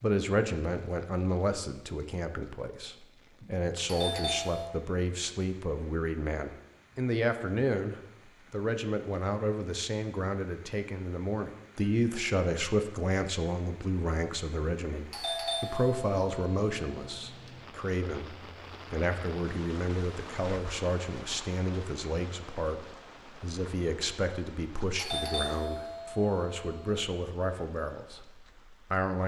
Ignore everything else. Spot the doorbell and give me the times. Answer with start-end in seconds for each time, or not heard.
3.9-4.7, 15.1-17.2, 24.9-27.1.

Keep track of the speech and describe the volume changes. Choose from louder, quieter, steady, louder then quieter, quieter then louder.
steady.